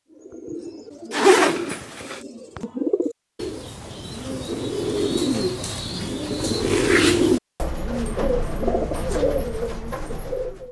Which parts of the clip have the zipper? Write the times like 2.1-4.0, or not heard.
1.1-2.2.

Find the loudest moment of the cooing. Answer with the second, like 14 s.
7 s.